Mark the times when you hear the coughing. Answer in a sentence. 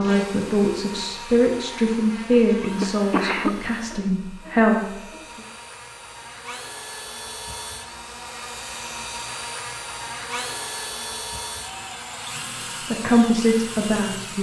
The coughing can be heard from 2.8 to 3.5 s.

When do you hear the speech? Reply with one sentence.
The speech can be heard from 0.0 to 5.4 s and from 12.8 to 14.3 s.